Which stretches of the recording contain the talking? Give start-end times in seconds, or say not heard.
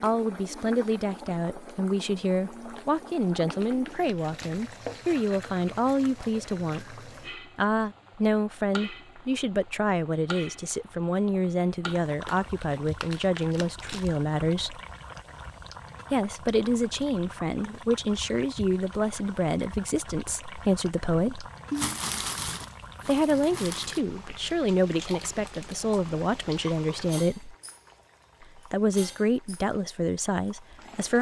0.0-14.8, 16.1-21.5, 23.1-27.6, 28.4-31.1.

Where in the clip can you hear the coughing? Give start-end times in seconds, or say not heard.
not heard.